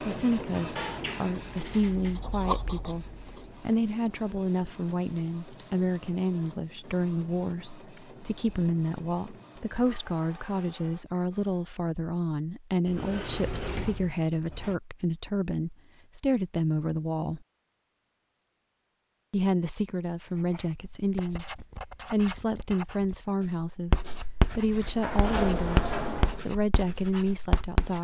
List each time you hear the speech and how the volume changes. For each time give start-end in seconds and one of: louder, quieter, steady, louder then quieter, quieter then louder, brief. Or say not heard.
0.0-17.4 steady
19.3-27.9 steady.